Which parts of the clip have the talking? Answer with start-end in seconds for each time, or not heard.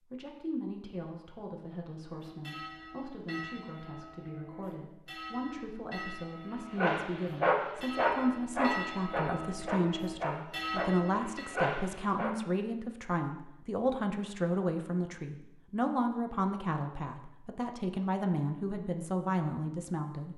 0.1-20.3.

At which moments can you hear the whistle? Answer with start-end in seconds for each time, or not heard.
not heard.